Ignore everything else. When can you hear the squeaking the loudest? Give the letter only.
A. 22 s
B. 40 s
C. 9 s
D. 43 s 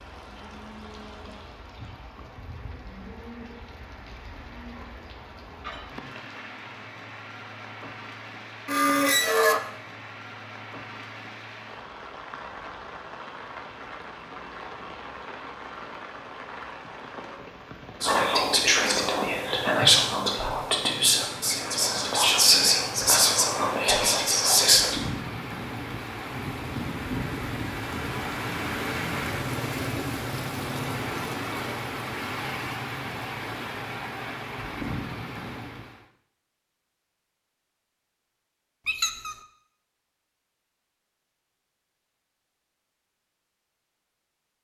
C.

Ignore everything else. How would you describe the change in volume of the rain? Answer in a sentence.
The volume of the rain goes up.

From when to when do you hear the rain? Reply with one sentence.
You can hear the rain from 0.0 to 36.0 s.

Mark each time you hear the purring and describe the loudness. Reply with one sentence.
The purring can't be heard in this clip.